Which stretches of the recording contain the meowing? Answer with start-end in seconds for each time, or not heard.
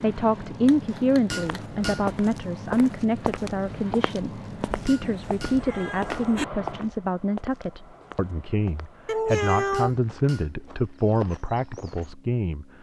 0.7-1.6, 5.0-6.5, 9.1-10.0.